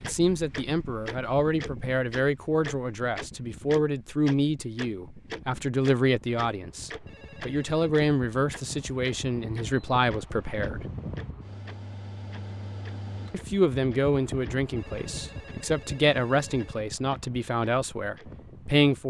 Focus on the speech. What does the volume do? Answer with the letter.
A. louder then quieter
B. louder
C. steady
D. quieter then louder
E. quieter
C.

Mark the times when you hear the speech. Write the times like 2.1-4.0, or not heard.
0.1-10.8, 13.3-19.0.